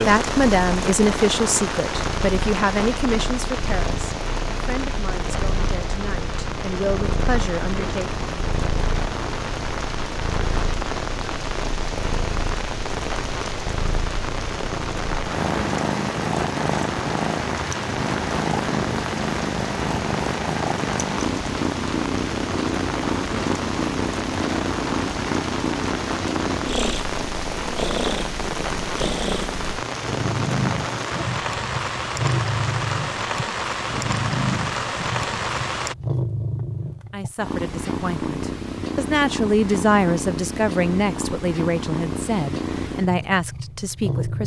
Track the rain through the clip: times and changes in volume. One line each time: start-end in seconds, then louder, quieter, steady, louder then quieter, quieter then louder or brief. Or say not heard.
0.0-36.0 steady.